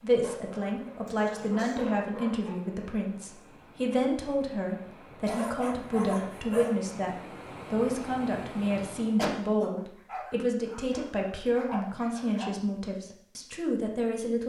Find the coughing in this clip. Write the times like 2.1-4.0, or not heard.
1.1-1.8, 8.8-9.7.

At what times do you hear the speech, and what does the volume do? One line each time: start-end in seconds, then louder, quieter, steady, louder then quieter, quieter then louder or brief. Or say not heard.
0.0-14.4 steady.